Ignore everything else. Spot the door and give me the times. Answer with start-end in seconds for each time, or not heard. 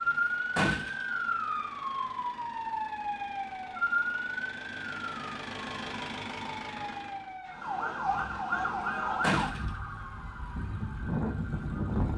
0.1-1.1, 9.2-9.7.